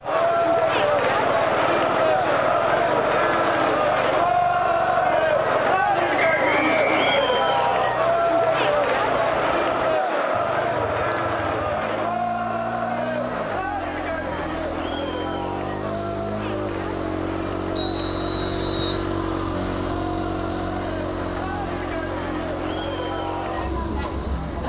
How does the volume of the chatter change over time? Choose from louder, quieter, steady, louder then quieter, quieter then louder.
quieter.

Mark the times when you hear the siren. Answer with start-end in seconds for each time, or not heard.
not heard.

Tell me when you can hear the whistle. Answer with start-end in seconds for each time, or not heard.
6.2-7.7, 17.8-19.1.